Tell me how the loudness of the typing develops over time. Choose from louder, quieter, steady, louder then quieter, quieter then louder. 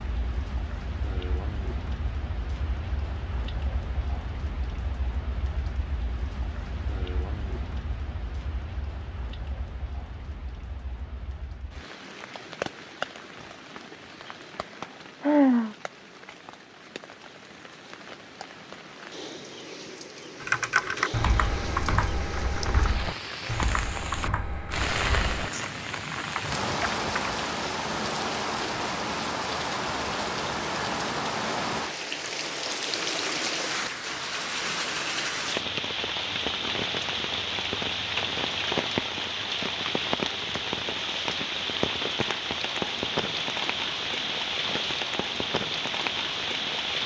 quieter.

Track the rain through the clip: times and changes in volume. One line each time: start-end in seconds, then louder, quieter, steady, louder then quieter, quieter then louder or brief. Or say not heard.
0.0-47.0 louder.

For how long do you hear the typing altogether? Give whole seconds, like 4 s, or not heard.
7 s.